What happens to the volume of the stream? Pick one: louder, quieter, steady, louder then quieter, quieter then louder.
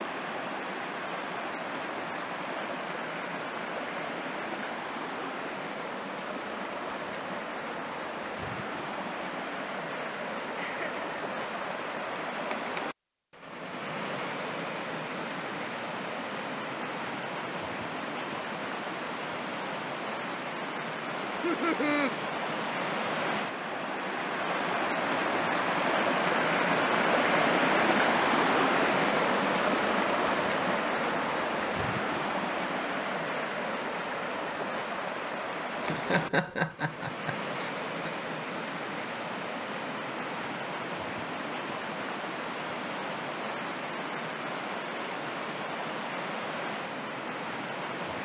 louder then quieter.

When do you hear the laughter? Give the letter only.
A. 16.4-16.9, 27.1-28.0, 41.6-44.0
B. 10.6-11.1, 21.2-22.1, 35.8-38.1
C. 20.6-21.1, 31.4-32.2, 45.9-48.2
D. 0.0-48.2
B.